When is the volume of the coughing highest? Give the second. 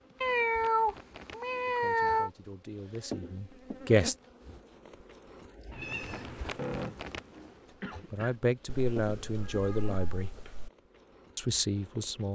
7 s.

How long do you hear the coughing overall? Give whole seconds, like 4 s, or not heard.
2 s.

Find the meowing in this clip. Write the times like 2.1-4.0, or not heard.
0.2-2.3, 5.7-6.6, 8.7-10.7.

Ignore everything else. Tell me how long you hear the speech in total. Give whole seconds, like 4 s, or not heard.
6 s.